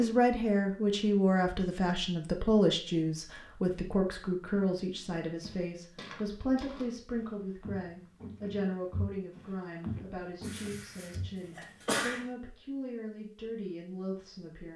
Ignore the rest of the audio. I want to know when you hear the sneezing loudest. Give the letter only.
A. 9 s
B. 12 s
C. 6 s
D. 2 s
B.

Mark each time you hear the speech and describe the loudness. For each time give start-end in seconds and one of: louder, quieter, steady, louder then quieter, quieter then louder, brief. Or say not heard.
0.0-14.7 quieter.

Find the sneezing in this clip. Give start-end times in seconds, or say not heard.
10.4-12.2.